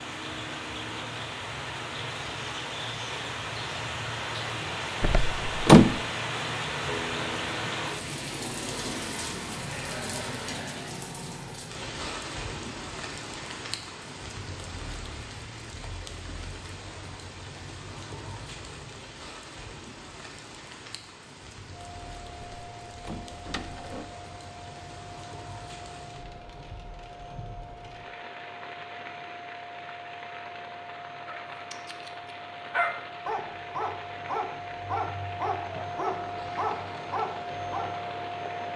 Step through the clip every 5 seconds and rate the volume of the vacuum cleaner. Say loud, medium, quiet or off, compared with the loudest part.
off, off, off, off, medium, medium, medium, loud.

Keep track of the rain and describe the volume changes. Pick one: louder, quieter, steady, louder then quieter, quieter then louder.
quieter.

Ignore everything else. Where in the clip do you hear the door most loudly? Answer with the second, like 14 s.
6 s.